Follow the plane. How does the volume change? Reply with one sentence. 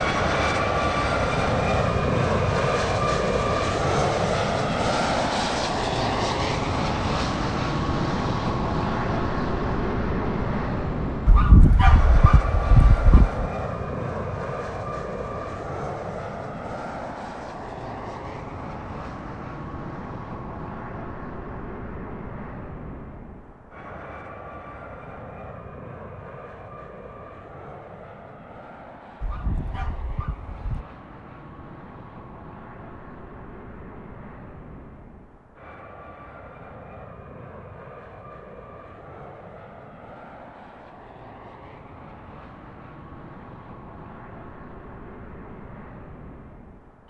The loudness of the plane goes down.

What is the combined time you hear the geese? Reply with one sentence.
You can hear the geese for 4 seconds altogether.